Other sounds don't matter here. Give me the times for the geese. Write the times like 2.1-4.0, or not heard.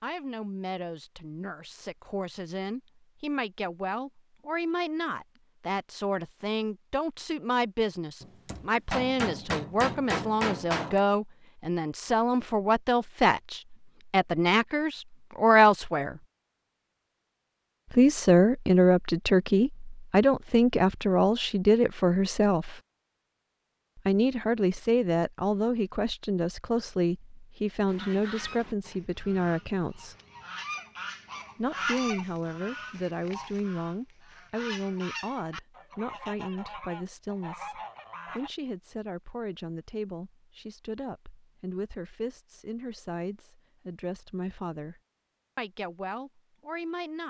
27.9-38.5.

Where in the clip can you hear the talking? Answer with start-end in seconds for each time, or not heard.
0.0-16.2, 17.9-22.8, 23.9-30.1, 31.6-47.2.